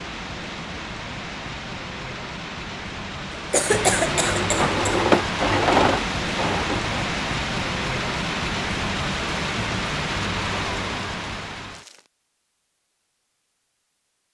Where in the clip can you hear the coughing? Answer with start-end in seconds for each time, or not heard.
3.3-5.0.